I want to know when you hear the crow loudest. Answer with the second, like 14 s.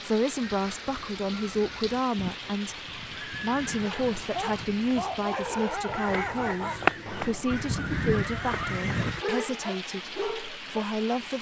7 s.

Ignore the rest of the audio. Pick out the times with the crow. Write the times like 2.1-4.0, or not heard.
0.4-9.2.